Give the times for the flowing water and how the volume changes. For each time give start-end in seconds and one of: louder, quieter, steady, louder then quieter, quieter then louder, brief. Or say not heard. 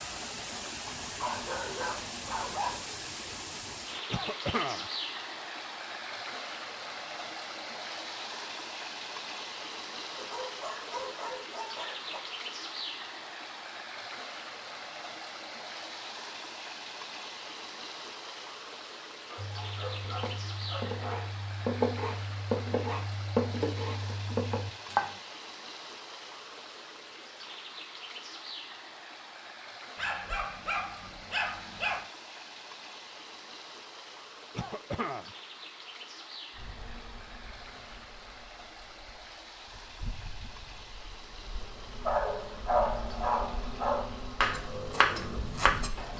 0.0-46.1 quieter.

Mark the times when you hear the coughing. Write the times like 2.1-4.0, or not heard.
4.1-4.9, 34.5-35.3.